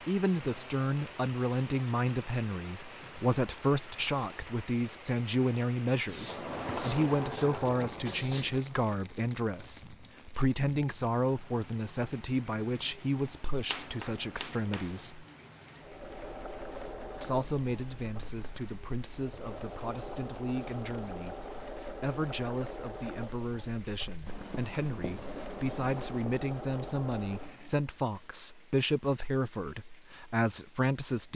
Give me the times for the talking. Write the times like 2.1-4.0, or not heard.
0.1-15.2, 17.2-31.3.